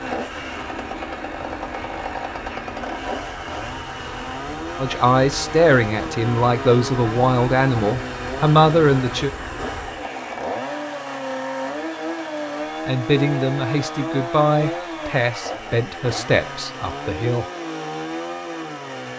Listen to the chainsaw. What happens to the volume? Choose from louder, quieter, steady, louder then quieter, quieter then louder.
steady.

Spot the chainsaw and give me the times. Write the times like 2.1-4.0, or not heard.
0.0-19.1.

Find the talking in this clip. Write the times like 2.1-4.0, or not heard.
4.8-9.3, 12.8-17.4.